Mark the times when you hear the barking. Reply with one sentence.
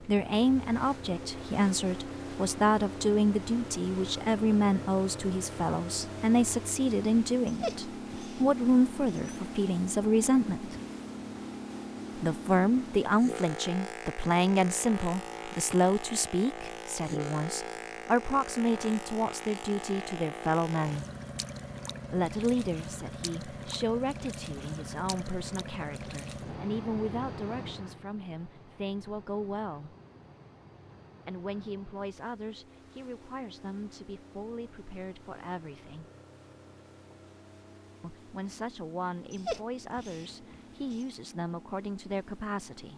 You can hear the barking from 7.5 to 9.3 s and from 39.3 to 41.0 s.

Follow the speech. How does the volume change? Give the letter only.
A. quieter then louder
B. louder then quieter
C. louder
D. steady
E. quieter
E.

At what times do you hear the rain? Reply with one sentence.
You can't hear the rain here.